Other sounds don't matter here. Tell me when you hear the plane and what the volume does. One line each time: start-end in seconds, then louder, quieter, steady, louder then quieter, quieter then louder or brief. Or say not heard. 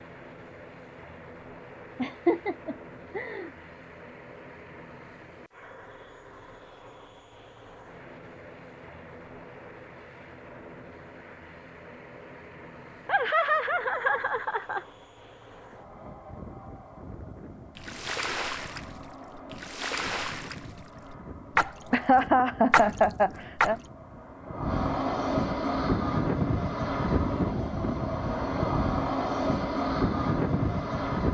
0.0-31.3 louder.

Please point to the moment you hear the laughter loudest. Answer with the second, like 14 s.
22 s.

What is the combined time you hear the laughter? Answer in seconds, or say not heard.
5 s.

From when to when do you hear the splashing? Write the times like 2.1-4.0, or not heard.
17.8-23.9.